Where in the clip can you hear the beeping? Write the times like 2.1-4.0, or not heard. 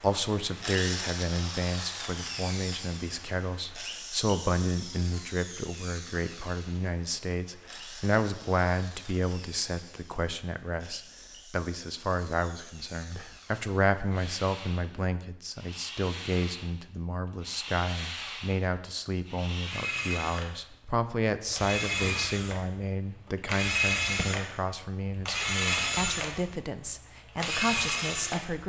not heard.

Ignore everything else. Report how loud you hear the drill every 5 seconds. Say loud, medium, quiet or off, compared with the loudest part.
medium, quiet, quiet, medium, loud, loud.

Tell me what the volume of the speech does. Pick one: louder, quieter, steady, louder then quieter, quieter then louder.
steady.